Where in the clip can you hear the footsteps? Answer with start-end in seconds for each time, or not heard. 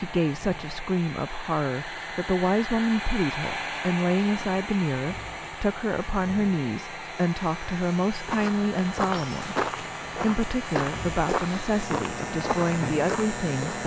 8.2-13.8.